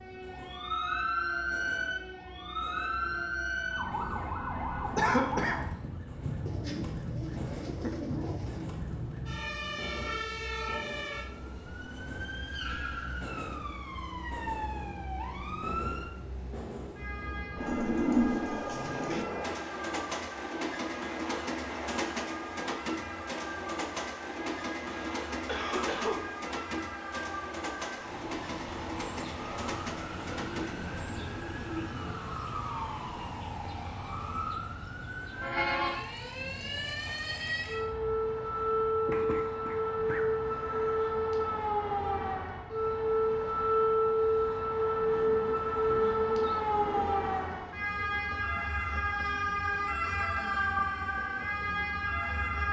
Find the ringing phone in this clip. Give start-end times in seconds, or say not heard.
not heard.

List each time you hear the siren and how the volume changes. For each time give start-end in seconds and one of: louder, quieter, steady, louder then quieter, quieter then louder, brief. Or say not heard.
0.0-52.6 quieter then louder.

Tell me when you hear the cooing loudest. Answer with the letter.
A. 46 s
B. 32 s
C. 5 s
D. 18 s
D.